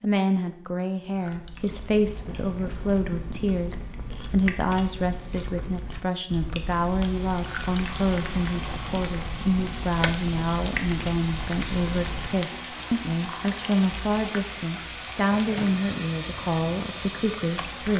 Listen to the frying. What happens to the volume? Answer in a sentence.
The volume of the frying stays about the same.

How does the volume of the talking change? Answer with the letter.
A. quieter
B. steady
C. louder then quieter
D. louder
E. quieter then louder
B.